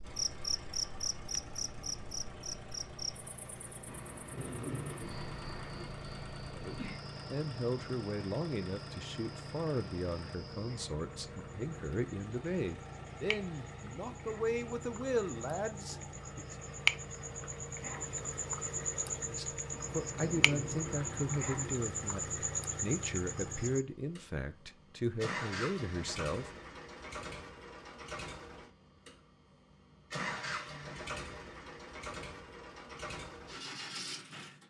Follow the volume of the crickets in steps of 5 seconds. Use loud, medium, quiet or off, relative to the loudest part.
loud, quiet, quiet, loud, loud, off, off.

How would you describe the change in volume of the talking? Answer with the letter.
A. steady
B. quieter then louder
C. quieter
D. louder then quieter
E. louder
A.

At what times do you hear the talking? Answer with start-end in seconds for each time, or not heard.
6.5-16.4, 19.2-26.5.